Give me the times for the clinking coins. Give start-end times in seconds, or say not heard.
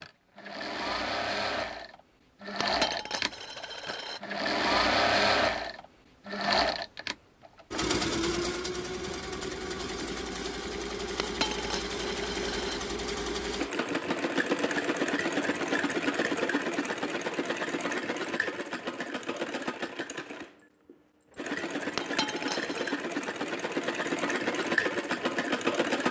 2.6-4.2, 11.2-12.8, 21.9-23.0.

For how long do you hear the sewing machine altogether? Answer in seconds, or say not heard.
26 s.